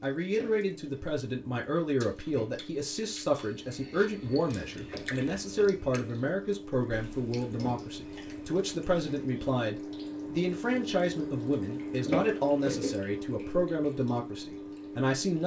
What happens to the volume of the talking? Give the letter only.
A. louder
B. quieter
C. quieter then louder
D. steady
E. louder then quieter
D.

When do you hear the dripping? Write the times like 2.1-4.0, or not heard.
0.0-15.4.